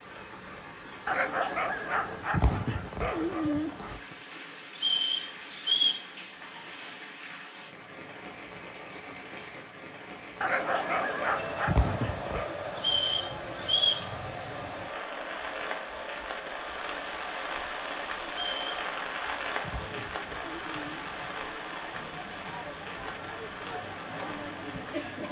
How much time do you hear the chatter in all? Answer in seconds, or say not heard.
15 s.